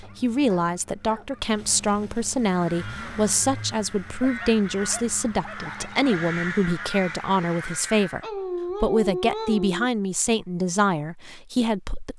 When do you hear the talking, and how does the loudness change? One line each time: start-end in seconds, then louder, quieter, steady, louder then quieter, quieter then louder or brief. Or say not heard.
0.0-12.1 steady.